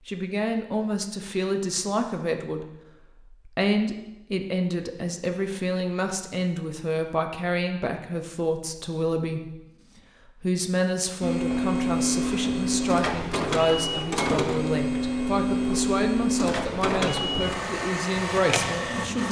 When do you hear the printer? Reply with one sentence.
You can hear the printer from 11.2 to 19.2 s.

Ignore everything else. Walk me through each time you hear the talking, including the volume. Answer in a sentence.
The talking can be heard from 0.1 to 19.2 s, at a steady volume.